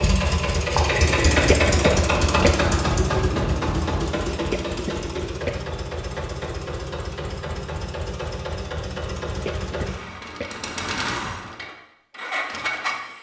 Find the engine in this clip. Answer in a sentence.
You can hear the engine from 0.0 to 13.1 s.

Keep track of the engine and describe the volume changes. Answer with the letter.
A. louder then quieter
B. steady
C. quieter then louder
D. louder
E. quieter
E.